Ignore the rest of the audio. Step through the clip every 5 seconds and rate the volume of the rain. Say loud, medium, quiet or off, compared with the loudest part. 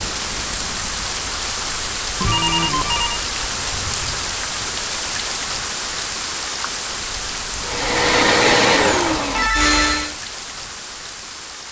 loud, loud, medium.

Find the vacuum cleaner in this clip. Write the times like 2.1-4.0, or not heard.
7.6-10.2.